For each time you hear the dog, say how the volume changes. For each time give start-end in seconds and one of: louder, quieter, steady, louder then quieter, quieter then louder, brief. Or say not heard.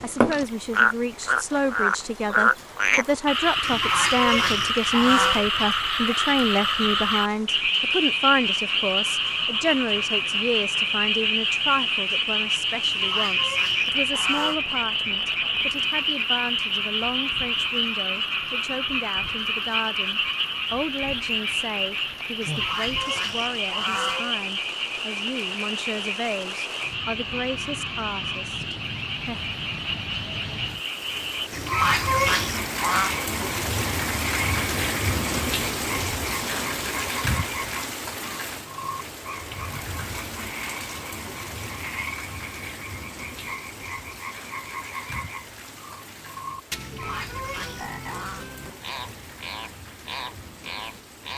not heard.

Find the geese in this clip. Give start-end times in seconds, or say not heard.
3.6-5.5, 12.8-14.6, 22.4-24.4, 31.5-33.1, 46.8-48.5.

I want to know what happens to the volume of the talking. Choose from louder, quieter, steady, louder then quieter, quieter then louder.
quieter.